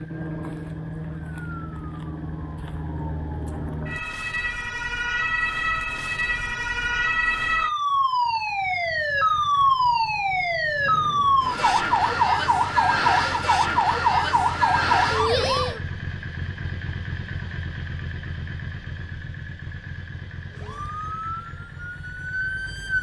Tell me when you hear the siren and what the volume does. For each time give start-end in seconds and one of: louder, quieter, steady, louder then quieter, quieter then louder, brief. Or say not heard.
0.0-15.8 louder
20.5-22.9 brief.